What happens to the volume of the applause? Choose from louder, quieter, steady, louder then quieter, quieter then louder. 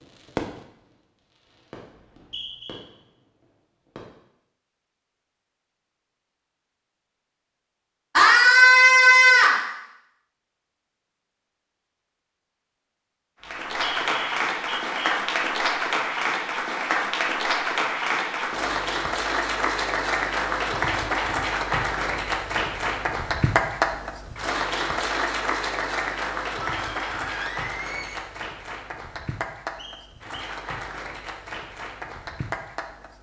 quieter.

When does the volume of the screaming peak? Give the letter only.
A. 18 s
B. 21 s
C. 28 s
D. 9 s
D.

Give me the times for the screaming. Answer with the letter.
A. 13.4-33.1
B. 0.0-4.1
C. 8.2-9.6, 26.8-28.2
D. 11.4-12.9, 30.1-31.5
C.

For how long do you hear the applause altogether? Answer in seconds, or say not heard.
20 s.